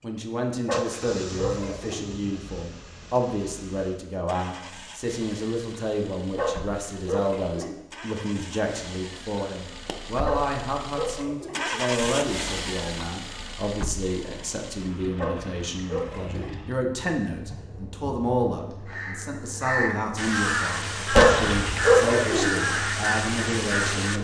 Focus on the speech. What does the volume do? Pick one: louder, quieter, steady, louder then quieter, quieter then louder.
steady.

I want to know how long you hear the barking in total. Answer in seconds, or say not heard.
7 s.